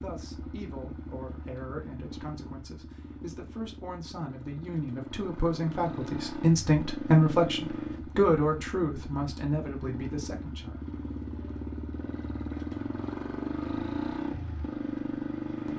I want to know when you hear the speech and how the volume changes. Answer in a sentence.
You can hear the speech from 0.0 to 10.8 s, getting louder then quieter.